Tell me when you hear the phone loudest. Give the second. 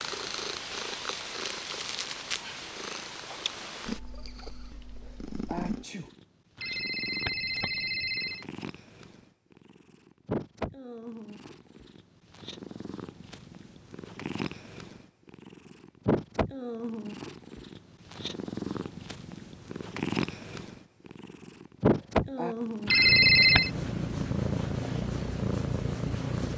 23 s.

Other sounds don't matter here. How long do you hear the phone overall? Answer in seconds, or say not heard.
3 s.